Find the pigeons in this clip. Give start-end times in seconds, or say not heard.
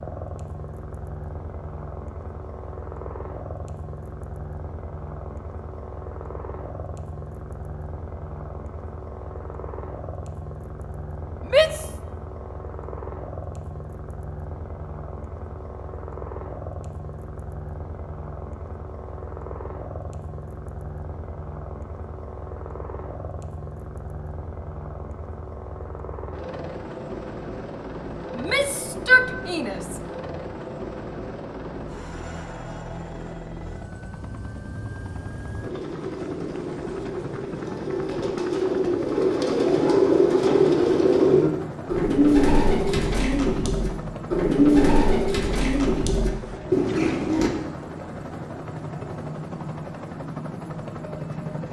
35.6-47.5.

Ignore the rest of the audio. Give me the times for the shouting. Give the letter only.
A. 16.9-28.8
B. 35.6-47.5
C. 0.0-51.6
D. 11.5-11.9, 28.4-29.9
D.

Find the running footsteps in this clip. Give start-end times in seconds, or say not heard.
not heard.